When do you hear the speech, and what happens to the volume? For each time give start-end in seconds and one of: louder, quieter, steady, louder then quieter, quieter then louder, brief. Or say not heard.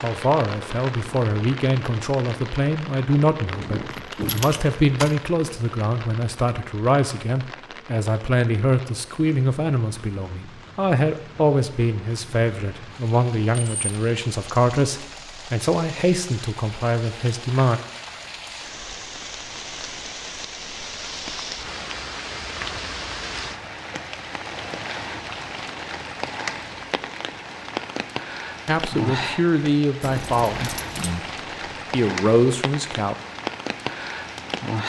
0.0-17.8 steady
28.6-31.2 brief
31.9-33.1 brief.